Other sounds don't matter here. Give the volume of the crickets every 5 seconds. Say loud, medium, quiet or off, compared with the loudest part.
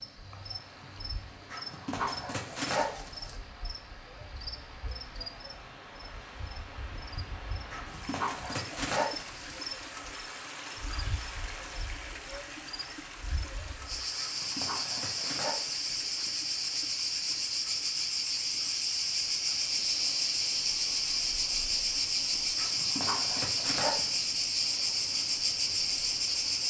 quiet, quiet, medium, loud, loud, loud.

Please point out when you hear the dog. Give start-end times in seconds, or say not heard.
1.5-3.4, 7.7-9.6, 14.2-16.1, 22.6-24.4.